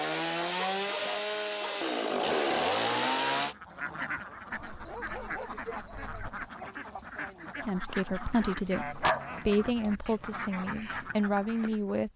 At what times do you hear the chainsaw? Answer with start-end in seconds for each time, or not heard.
0.0-3.5.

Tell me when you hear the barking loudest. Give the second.
9 s.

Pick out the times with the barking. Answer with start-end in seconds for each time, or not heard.
0.3-1.9, 4.5-6.5, 8.4-9.9.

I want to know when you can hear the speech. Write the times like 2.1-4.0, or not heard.
7.6-12.1.